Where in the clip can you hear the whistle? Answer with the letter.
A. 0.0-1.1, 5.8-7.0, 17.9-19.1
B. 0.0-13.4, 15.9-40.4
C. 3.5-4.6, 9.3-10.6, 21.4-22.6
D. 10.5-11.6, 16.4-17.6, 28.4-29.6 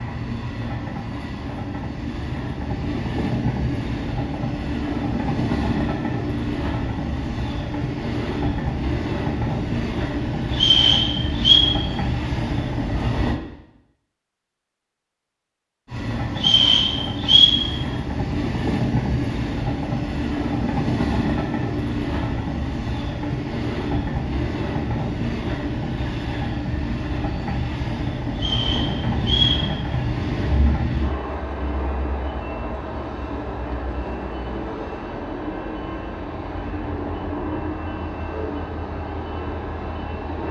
D.